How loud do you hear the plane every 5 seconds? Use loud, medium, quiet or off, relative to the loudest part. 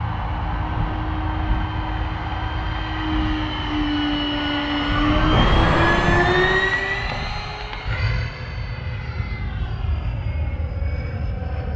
loud, loud, medium.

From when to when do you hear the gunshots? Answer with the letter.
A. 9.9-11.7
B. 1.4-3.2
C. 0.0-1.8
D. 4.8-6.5
D.